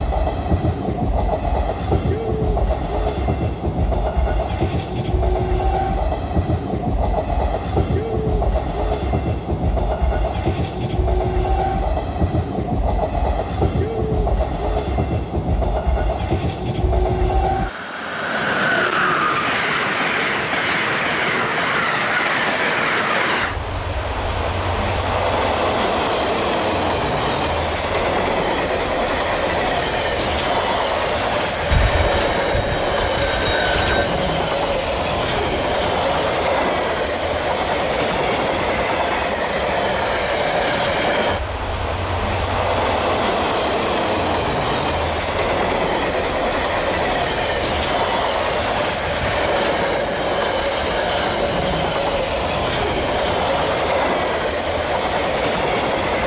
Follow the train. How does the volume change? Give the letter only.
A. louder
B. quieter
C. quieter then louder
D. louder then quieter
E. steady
E.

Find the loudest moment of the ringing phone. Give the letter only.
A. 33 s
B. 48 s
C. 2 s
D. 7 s
A.